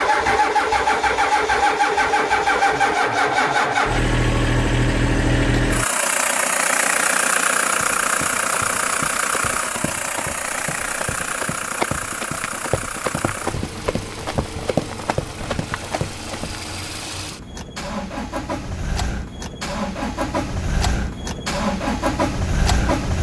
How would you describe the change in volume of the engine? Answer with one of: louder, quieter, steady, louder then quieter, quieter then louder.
quieter then louder.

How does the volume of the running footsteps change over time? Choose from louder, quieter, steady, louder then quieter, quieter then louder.
louder.